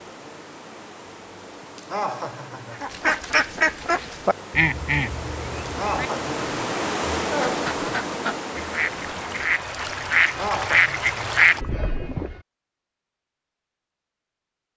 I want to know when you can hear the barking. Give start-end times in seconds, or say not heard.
not heard.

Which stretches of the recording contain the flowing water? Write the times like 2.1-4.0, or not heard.
0.0-9.7.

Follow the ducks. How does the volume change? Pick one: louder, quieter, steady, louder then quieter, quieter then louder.
quieter then louder.